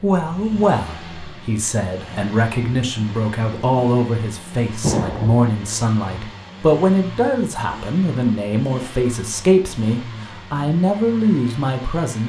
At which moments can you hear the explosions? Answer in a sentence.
You can hear the explosions from 4.8 to 5.5 s.